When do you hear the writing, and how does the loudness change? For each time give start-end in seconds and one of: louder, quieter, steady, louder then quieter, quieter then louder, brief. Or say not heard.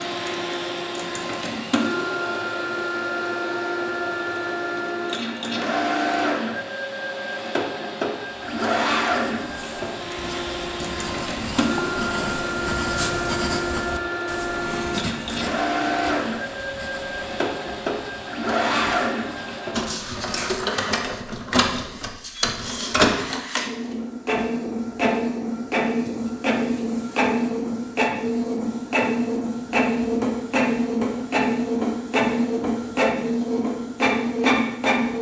8.4-19.8 louder then quieter.